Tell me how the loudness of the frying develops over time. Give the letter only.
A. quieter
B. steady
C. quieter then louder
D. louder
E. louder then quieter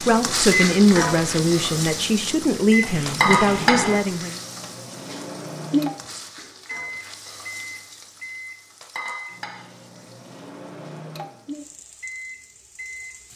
A.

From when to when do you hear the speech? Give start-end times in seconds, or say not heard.
0.0-4.4.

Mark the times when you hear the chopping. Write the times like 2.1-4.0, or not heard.
not heard.